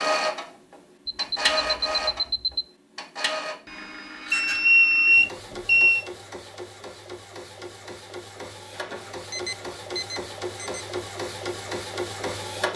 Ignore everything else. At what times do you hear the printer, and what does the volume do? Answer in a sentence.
You can hear the printer from 0.0 to 12.7 s, getting quieter then louder.